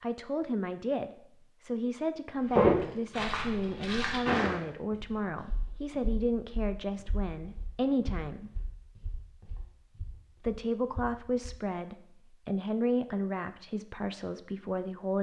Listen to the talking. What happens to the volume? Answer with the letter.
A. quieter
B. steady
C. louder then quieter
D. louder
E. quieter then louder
B.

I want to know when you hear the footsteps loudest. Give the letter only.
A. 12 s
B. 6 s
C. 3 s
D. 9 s
C.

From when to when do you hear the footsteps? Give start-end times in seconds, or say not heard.
2.5-11.6.